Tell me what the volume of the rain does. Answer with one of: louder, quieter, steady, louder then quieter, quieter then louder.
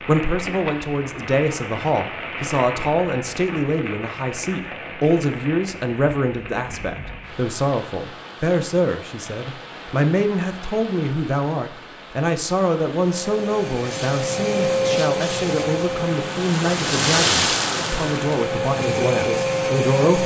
quieter then louder.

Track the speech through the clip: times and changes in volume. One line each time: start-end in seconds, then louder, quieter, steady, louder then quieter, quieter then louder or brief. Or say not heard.
0.0-20.2 steady.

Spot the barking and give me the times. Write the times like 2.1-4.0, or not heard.
not heard.